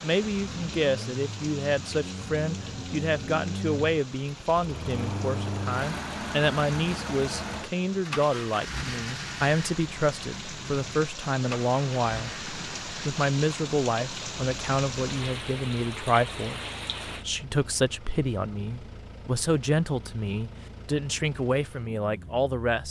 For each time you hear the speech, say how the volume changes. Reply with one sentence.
You can hear the speech from 0.0 to 22.8 s, at a steady volume.